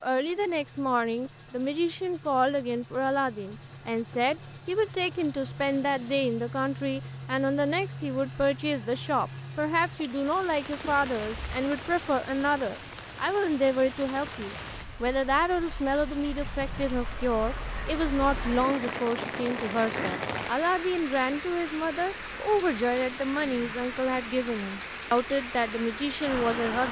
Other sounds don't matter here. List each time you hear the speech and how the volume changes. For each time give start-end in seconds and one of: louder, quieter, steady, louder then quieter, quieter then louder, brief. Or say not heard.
0.0-26.8 steady.